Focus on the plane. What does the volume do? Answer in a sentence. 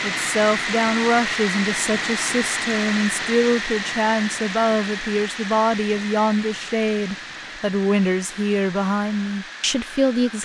The loudness of the plane goes down.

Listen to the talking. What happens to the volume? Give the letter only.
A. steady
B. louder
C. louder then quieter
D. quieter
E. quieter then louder
A.